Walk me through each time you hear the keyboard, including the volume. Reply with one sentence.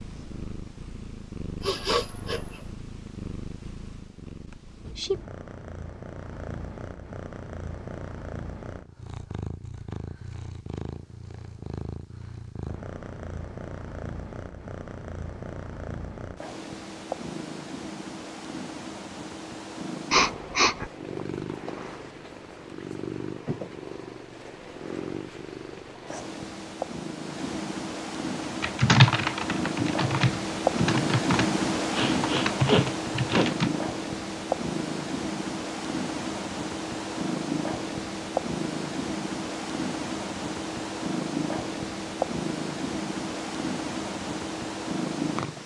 The keyboard can be heard from 28.6 to 33.7 s, getting quieter then louder.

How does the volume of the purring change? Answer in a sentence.
The volume of the purring goes up.